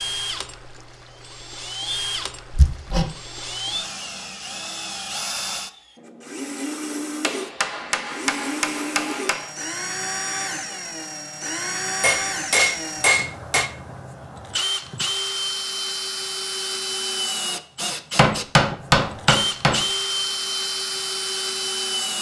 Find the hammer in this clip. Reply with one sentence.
The hammer can be heard from 2.5 to 3.1 s, from 7.2 to 9.5 s, from 12.0 to 13.7 s and from 18.1 to 19.9 s.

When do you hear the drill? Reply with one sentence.
The drill can be heard from 0.0 to 22.1 s.